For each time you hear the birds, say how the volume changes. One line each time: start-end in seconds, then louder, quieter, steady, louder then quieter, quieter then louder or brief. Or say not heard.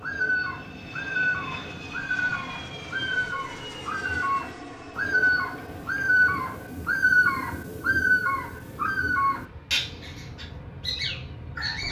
0.0-11.8 louder then quieter.